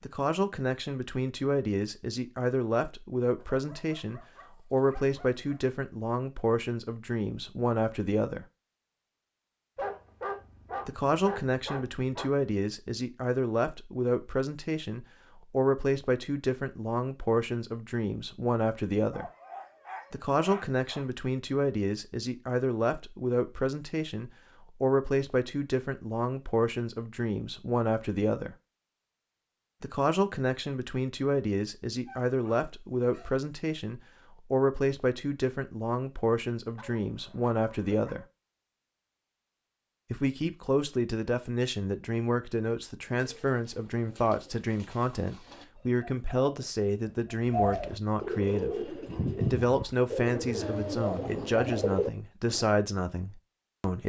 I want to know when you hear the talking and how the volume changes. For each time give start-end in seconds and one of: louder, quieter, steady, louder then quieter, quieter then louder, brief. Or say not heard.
0.0-8.4 steady
10.8-19.3 steady
20.1-28.6 steady
29.8-38.2 steady
40.1-54.0 steady.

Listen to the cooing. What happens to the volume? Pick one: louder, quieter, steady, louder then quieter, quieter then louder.
louder.